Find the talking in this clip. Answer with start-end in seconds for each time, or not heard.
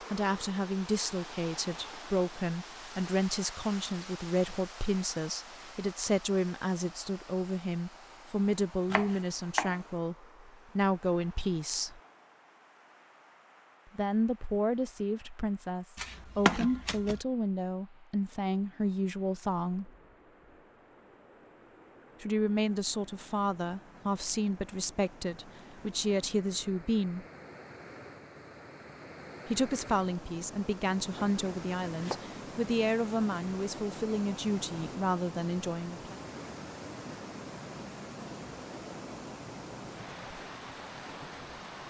0.1-12.0, 13.9-19.9, 22.2-27.2, 29.4-36.2.